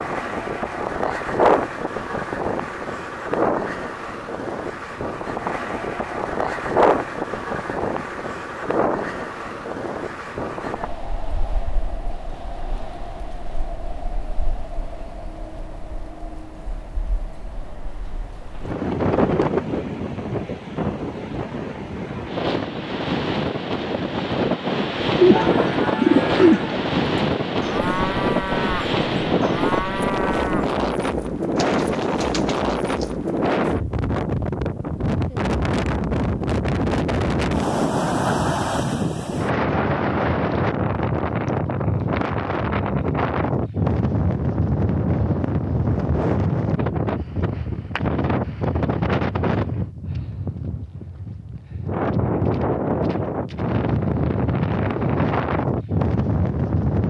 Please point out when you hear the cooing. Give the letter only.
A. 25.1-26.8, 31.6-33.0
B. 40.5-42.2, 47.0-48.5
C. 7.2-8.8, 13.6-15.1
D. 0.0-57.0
A.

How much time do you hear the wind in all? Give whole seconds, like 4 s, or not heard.
57 s.